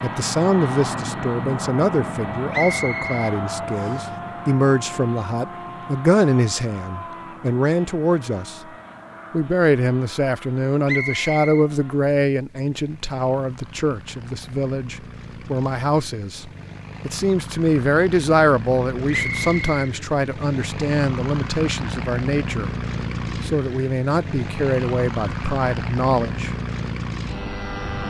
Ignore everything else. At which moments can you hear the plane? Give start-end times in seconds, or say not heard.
0.0-28.0.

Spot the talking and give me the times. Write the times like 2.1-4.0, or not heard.
0.0-8.6, 9.3-22.7, 23.4-26.6.